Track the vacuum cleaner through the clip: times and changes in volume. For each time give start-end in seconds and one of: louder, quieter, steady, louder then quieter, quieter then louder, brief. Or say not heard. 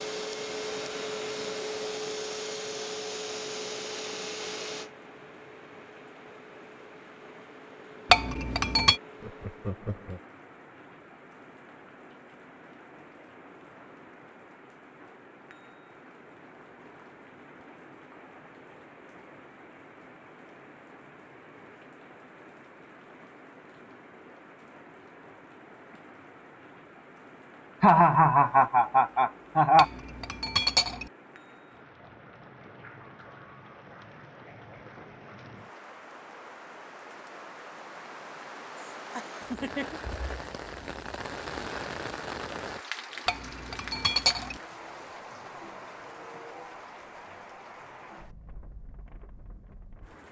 0.0-9.7 quieter.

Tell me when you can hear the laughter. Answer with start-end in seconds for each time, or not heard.
9.2-10.2, 27.8-29.9, 38.8-40.0.